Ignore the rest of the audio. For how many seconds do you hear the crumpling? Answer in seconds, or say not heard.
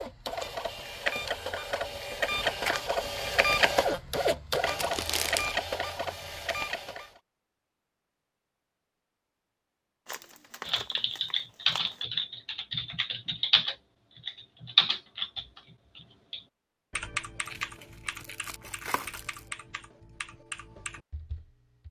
5 s.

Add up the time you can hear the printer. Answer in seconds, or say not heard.
7 s.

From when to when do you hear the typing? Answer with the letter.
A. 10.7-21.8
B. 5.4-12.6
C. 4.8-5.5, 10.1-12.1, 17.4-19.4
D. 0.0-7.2
A.